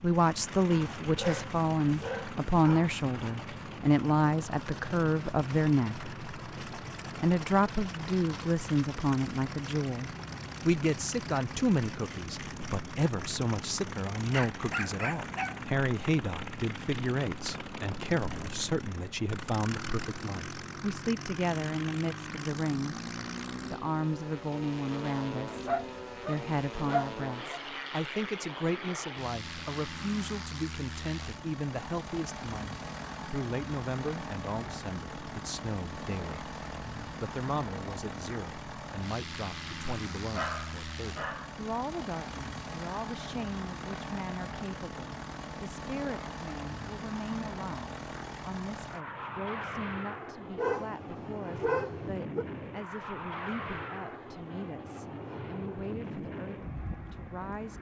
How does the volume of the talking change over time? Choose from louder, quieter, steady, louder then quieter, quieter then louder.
quieter.